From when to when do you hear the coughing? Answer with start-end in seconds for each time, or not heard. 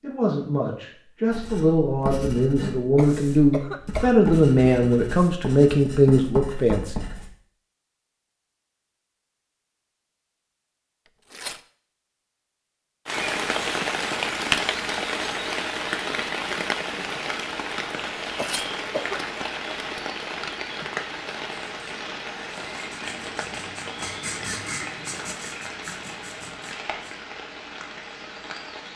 3.0-4.2, 18.4-19.4.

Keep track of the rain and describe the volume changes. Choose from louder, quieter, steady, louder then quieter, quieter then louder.
quieter.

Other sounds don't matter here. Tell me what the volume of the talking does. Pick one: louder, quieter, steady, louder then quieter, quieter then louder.
louder.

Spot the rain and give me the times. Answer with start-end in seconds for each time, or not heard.
13.1-28.9.